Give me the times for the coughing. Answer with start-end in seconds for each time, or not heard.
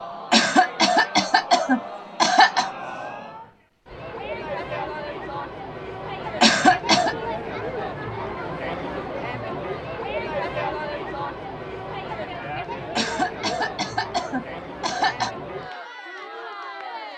0.3-2.7, 6.4-7.2, 12.9-15.3.